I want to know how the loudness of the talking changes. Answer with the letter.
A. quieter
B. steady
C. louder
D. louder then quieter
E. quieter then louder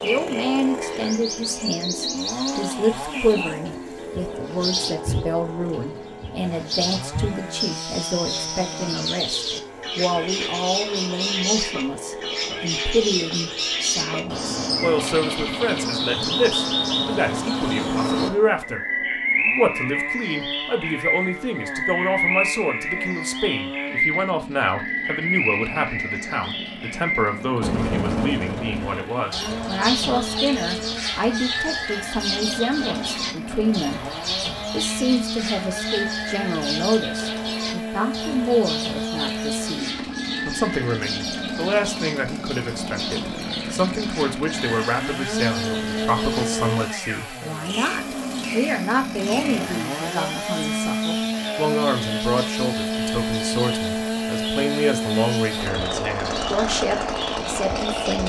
B.